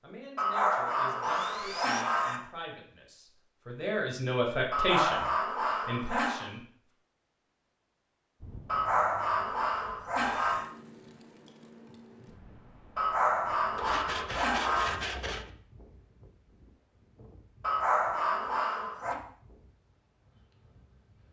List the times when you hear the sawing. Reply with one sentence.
You can hear the sawing from 1.2 to 2.0 s and from 13.8 to 15.5 s.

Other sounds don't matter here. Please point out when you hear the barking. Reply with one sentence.
The barking can be heard from 0.3 to 2.4 s, from 4.7 to 6.5 s, from 8.7 to 10.7 s, from 12.9 to 14.9 s and from 17.6 to 19.1 s.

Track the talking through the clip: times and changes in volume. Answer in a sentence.
The talking can be heard from 0.0 to 6.7 s, getting louder then quieter.